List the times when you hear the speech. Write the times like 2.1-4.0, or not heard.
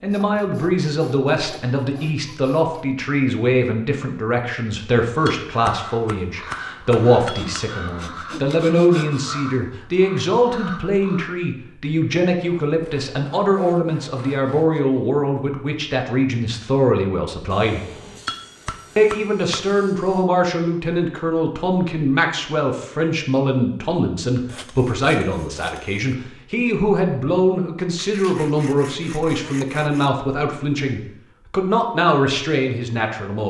0.0-17.9, 18.9-33.4.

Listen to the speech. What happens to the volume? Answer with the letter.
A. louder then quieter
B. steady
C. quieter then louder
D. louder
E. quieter
B.